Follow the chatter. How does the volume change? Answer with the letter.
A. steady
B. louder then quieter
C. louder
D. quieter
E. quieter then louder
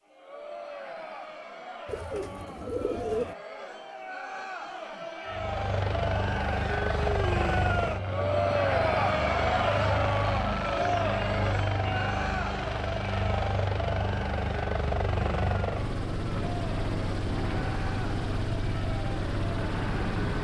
B.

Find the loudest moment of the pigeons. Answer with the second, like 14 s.
3 s.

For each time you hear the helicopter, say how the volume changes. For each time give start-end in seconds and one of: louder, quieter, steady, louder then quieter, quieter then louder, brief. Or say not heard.
5.2-20.3 steady.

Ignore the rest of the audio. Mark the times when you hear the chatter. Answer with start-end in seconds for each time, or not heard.
0.0-20.3.